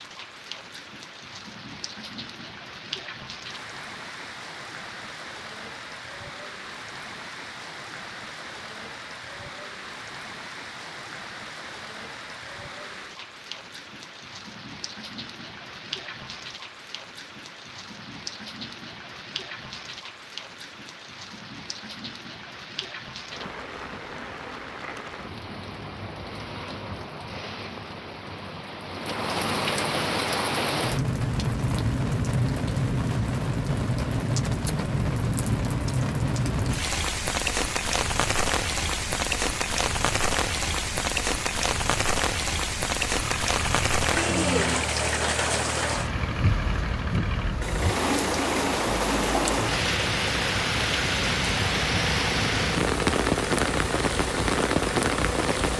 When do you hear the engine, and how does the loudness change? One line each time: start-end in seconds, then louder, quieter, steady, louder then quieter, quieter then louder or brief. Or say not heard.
43.0-55.7 steady.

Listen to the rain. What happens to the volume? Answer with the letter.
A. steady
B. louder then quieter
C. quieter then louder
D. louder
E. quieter
D.